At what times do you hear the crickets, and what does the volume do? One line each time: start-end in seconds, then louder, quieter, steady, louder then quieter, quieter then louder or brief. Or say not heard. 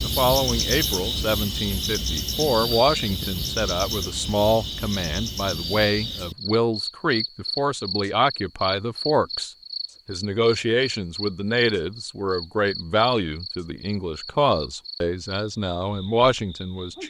0.0-17.0 quieter.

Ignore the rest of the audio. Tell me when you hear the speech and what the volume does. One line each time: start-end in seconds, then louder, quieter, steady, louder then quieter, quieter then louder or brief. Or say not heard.
0.0-17.0 steady.